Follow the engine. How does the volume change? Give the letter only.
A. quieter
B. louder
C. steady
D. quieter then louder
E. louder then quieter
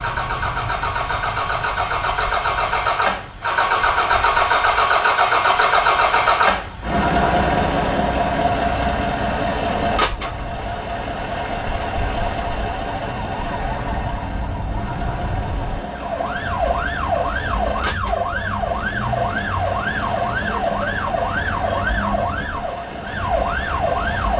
A.